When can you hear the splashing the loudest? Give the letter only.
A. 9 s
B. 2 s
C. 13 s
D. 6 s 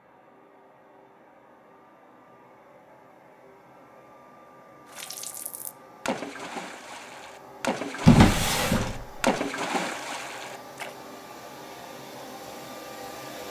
A.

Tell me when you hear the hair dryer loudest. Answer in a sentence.
The loudest moment of the hair dryer is at 13 seconds.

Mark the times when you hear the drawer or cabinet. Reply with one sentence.
The drawer or cabinet can be heard from 8.1 to 9.2 s.